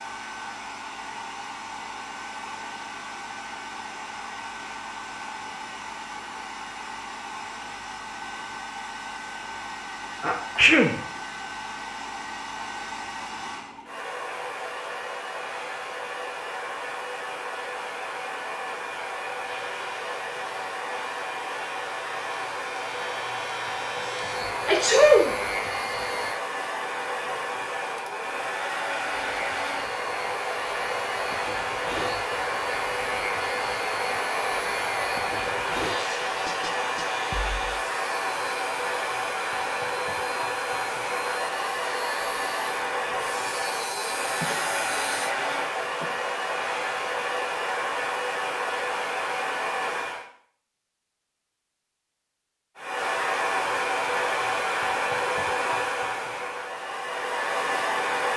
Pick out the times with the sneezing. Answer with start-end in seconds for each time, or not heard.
10.2-10.9, 24.6-25.3, 44.4-46.0.